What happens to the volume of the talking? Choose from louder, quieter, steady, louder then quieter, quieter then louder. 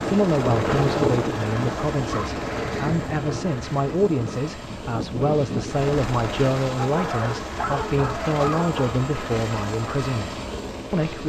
steady.